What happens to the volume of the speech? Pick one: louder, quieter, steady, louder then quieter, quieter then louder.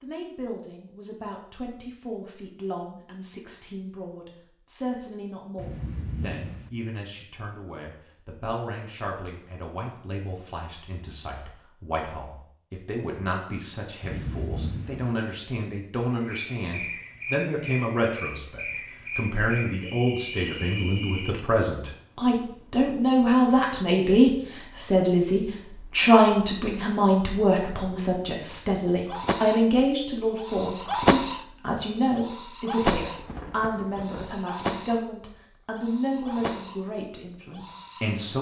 louder then quieter.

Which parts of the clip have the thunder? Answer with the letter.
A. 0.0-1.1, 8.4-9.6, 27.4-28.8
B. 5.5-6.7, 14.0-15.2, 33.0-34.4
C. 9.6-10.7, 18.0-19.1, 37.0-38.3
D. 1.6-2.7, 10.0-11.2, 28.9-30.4
B.